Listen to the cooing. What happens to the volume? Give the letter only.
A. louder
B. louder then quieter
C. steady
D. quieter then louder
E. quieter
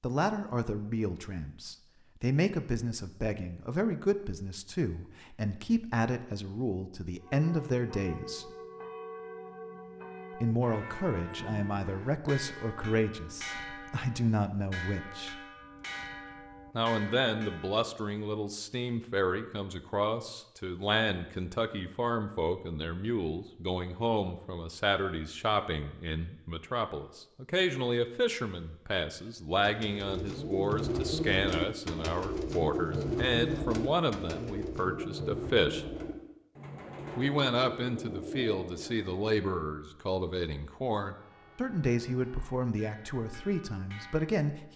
E.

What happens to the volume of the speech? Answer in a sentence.
The volume of the speech stays about the same.